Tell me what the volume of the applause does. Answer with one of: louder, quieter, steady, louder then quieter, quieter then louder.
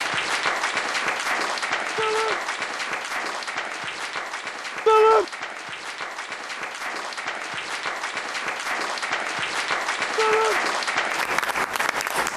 quieter then louder.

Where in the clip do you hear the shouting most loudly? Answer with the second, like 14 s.
5 s.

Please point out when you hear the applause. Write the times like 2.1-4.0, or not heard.
0.0-12.3.